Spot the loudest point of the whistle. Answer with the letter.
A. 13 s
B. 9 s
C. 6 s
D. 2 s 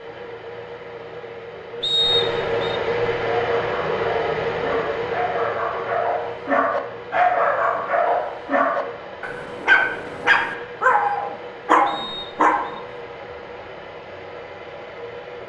D.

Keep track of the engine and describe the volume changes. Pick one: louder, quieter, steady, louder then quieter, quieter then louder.
quieter.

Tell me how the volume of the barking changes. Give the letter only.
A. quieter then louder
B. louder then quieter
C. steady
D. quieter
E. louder
E.